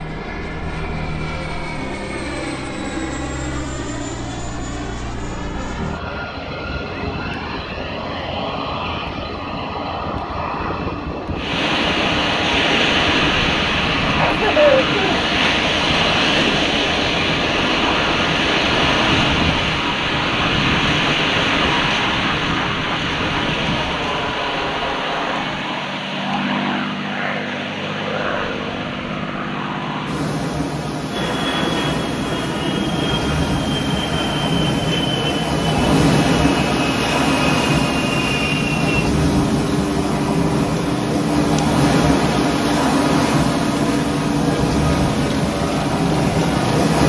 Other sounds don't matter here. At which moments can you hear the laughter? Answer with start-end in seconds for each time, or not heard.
14.2-15.2.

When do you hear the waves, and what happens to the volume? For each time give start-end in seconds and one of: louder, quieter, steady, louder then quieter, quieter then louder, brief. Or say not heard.
11.3-47.0 quieter then louder.